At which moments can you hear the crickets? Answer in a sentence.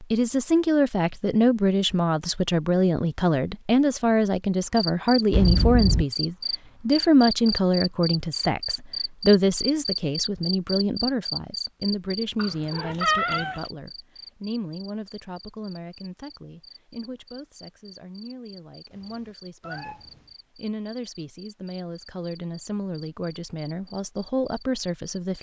You can hear the crickets from 4.8 to 25.3 s.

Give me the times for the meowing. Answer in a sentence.
You can hear the meowing from 5.3 to 6.0 s, from 12.3 to 13.6 s and from 18.9 to 20.3 s.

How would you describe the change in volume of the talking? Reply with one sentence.
The volume of the talking goes down, then up.